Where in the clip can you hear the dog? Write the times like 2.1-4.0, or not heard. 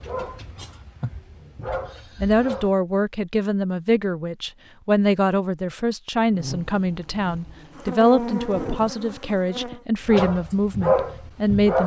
0.0-2.7, 10.1-11.8.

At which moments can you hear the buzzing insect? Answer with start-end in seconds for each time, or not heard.
6.2-9.8.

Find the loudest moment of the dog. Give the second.
11 s.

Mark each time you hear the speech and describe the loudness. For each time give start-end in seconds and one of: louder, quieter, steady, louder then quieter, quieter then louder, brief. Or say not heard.
2.2-11.8 steady.